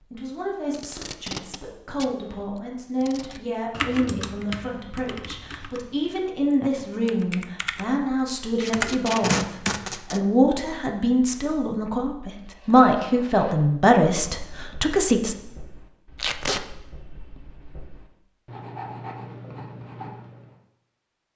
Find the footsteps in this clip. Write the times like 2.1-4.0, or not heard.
not heard.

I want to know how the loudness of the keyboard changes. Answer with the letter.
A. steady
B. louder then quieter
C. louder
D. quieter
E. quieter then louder
E.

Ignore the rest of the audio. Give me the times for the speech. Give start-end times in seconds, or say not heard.
0.1-15.3.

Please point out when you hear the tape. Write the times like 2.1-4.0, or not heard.
0.7-3.3, 8.6-10.2, 16.1-16.6.